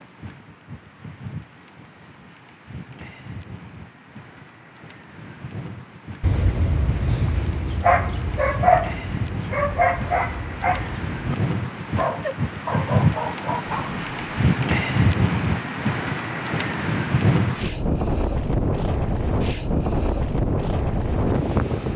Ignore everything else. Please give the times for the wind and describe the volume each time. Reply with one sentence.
You can hear the wind from 0.0 to 21.9 s, getting louder.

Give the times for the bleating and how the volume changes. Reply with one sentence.
The bleating can't be heard in this clip.